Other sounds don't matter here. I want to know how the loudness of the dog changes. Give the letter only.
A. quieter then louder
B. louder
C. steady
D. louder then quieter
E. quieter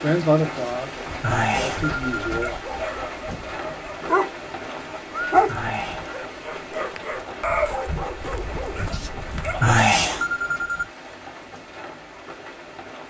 D.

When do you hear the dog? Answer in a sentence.
The dog can be heard from 1.6 to 9.8 s.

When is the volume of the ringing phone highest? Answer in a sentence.
The volume of the ringing phone peaks at 10 seconds.